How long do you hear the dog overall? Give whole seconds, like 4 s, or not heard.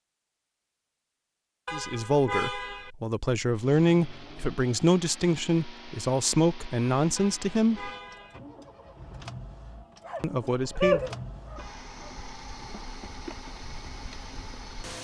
2 s.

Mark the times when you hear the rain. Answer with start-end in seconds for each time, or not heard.
not heard.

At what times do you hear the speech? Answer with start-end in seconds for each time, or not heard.
1.7-7.9, 10.2-11.0.